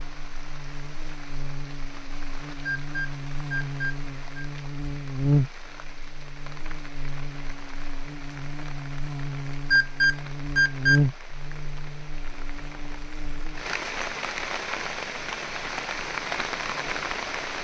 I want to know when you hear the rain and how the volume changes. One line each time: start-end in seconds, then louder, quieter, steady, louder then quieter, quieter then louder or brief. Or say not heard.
0.0-17.6 louder.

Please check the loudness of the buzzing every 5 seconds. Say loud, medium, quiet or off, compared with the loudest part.
medium, loud, loud, quiet.